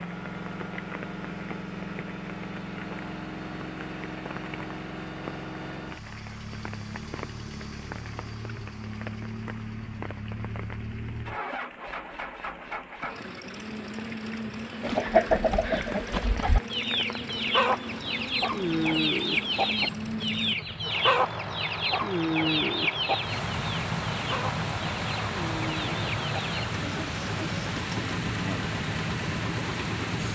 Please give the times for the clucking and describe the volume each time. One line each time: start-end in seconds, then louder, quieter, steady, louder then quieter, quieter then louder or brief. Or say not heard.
14.8-26.6 quieter.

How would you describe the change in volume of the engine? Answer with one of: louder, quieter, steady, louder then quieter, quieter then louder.
steady.